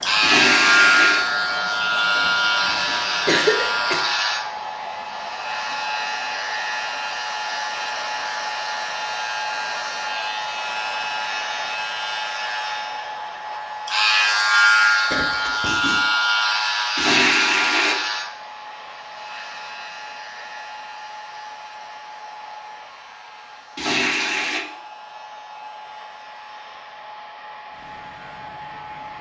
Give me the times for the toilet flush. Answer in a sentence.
The toilet flush can be heard from 0.2 to 1.2 s, from 16.9 to 17.9 s and from 23.8 to 24.6 s.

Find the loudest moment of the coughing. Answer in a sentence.
The loudest moment of the coughing is at 3 seconds.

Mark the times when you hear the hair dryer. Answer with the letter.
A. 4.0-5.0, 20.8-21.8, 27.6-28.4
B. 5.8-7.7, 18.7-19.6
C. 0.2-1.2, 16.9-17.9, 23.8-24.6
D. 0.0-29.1
D.